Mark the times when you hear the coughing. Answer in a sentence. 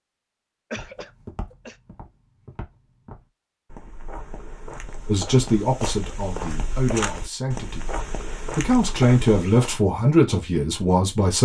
The coughing can be heard from 0.7 to 1.8 s.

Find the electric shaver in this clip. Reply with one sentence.
The electric shaver can't be heard in this clip.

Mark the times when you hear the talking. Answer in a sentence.
You can hear the talking from 5.0 to 11.4 s.